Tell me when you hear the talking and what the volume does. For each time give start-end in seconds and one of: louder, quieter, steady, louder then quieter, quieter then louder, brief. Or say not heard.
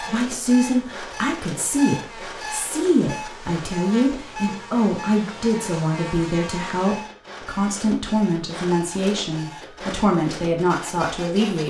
0.0-11.6 steady.